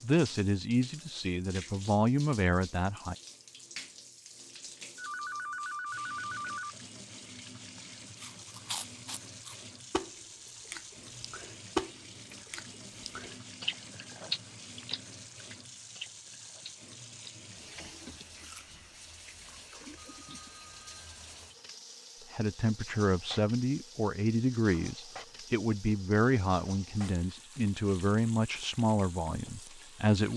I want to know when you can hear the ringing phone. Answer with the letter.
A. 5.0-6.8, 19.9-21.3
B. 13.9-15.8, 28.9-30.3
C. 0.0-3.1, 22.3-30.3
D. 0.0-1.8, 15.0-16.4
A.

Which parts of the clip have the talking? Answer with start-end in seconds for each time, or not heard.
0.0-3.1, 22.3-30.3.